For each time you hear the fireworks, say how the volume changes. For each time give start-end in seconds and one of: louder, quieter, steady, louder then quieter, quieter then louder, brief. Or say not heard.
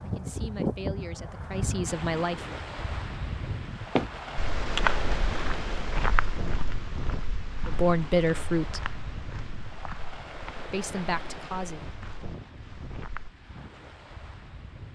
not heard.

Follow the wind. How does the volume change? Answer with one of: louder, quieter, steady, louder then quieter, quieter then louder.
quieter.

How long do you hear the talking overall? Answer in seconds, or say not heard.
5 s.